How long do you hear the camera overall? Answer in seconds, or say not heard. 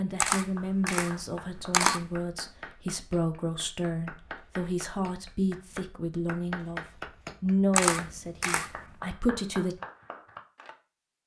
3 s.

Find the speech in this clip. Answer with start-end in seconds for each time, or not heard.
0.0-9.8.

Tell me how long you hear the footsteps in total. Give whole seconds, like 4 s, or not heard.
not heard.